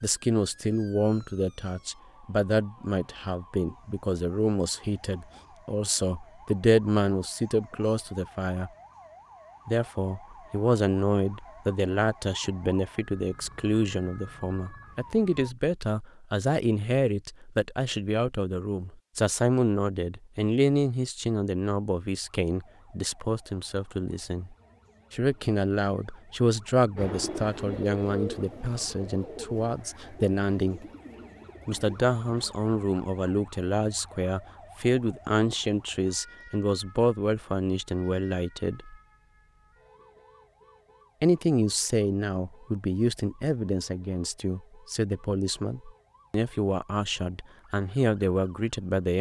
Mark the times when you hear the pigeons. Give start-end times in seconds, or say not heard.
26.9-32.6.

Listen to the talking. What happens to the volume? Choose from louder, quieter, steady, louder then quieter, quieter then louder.
steady.